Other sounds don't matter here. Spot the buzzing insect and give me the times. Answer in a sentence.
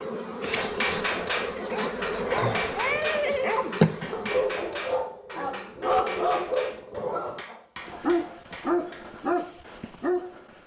You can hear the buzzing insect from 0.0 to 4.5 s.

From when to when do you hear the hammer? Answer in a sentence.
You can hear the hammer from 0.6 to 9.1 s.